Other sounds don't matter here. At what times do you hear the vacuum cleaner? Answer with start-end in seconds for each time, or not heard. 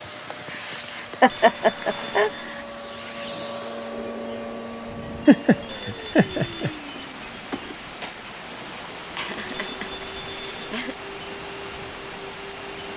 0.0-12.9.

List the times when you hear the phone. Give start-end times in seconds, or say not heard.
1.2-2.6, 5.7-6.8, 9.5-10.8.